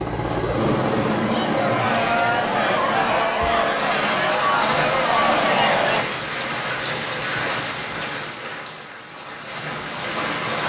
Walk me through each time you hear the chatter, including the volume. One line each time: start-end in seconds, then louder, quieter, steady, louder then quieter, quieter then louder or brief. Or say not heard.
0.1-6.0 louder.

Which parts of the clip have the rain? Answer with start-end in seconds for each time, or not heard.
3.5-10.6.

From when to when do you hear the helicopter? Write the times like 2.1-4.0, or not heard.
0.0-3.2.